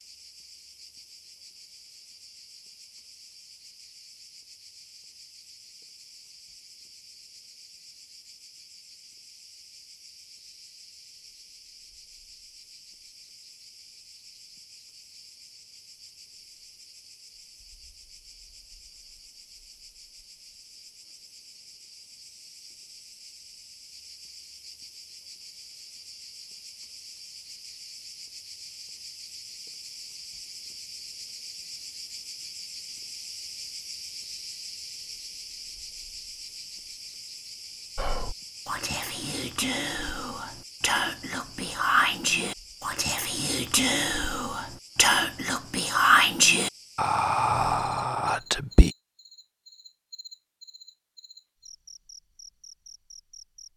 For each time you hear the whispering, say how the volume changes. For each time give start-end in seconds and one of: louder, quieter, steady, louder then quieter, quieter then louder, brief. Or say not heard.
38.0-48.9 louder.